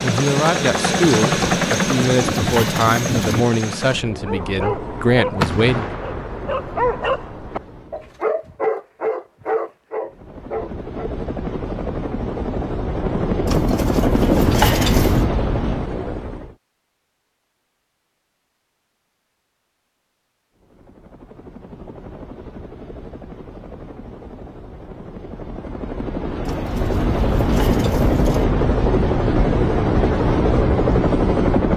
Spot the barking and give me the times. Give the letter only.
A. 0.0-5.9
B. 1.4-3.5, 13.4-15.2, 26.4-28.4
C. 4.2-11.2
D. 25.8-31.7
C.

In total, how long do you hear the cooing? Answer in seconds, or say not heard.
6 s.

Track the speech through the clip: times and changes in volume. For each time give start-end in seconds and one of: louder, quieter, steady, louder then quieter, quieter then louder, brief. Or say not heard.
0.0-5.9 steady.